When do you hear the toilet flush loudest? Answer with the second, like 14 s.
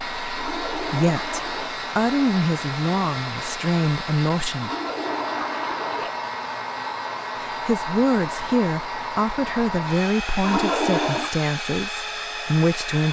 11 s.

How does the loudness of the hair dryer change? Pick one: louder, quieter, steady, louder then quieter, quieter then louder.
steady.